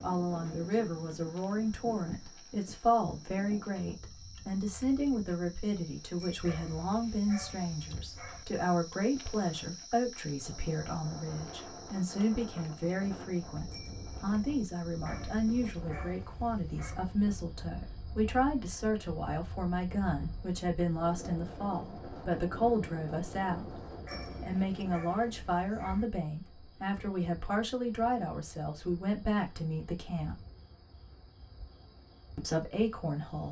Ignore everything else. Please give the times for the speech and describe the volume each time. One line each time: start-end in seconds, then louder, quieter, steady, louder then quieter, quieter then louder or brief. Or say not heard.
0.0-23.8 steady
24.4-30.4 steady
32.4-33.4 brief.